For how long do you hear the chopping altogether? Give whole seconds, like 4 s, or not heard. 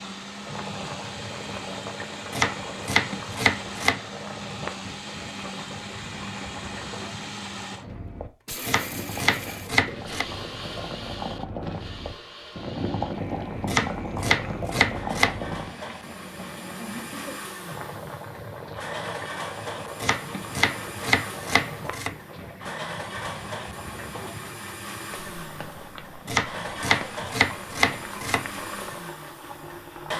9 s.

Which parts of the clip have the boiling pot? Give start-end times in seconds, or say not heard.
0.0-30.1.